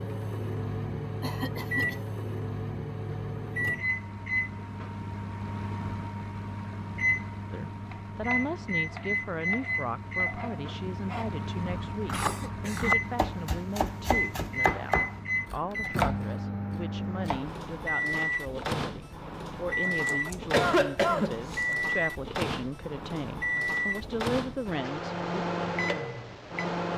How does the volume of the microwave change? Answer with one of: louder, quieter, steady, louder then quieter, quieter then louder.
steady.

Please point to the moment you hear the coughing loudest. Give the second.
21 s.